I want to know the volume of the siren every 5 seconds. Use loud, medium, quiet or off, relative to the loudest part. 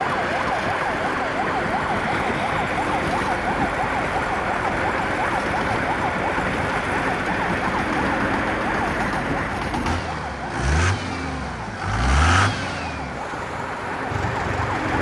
loud, loud, medium.